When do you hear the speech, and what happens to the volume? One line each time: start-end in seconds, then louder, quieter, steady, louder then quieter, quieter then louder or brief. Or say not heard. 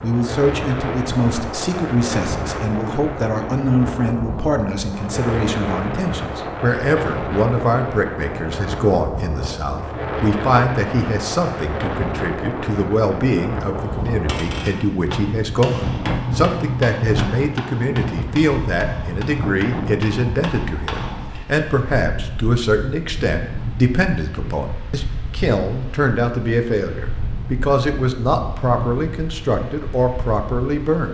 0.0-31.1 steady.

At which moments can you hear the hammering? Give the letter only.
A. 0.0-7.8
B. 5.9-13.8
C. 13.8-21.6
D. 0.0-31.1
C.